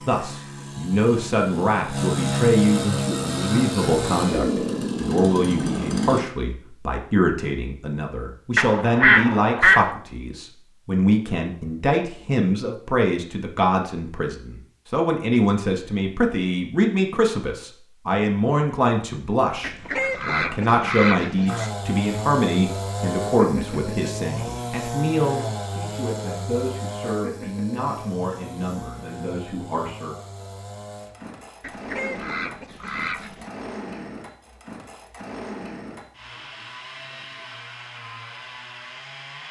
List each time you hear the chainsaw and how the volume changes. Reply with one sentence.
You can hear the chainsaw from 0.0 to 6.2 s, getting louder; and from 21.4 to 39.4 s, getting quieter.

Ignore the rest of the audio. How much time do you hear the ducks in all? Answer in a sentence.
You can hear the ducks for 5 seconds altogether.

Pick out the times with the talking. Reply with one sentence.
The talking can be heard from 0.1 to 30.1 s.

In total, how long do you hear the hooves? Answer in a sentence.
The hooves can't be heard in this clip.